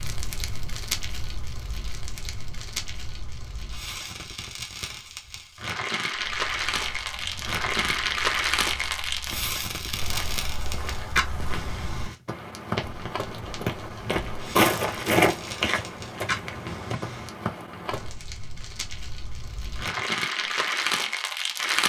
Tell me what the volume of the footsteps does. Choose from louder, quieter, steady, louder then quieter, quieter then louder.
louder then quieter.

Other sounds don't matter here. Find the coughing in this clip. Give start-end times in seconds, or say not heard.
not heard.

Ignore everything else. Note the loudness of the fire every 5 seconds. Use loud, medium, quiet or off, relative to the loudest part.
medium, loud, medium, medium, loud.